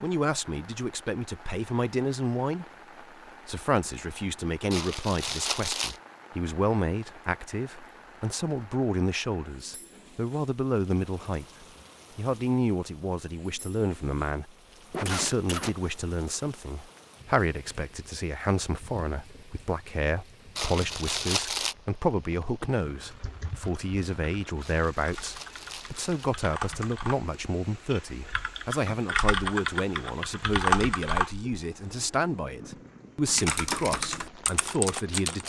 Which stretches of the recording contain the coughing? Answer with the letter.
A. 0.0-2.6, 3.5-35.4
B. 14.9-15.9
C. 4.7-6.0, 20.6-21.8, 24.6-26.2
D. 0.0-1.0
B.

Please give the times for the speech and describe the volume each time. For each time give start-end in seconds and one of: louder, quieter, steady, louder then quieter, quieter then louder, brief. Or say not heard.
0.0-2.6 brief
3.5-35.4 steady.